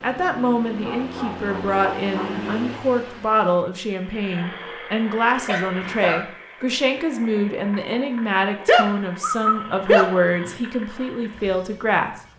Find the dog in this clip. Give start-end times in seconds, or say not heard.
0.8-2.6, 5.5-6.2, 8.7-10.5.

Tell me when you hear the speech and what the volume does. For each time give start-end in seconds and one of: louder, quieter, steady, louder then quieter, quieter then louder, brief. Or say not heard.
0.0-12.2 steady.